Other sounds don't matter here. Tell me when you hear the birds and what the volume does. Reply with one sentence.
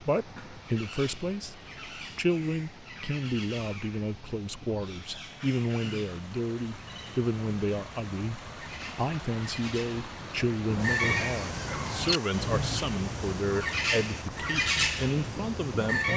The birds can be heard from 0.0 to 16.1 s, getting louder.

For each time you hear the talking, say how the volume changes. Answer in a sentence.
You can hear the talking from 0.0 to 16.1 s, at a steady volume.